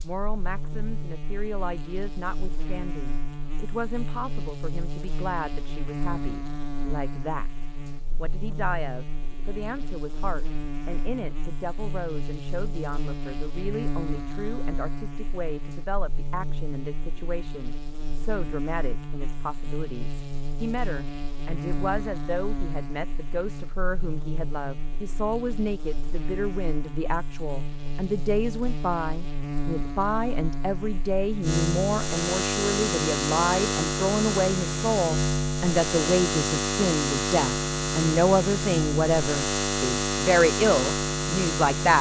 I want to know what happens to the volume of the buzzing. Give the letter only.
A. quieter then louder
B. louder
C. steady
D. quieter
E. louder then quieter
B.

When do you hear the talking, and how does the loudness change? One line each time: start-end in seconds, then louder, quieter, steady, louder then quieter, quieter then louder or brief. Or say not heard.
0.0-41.9 louder.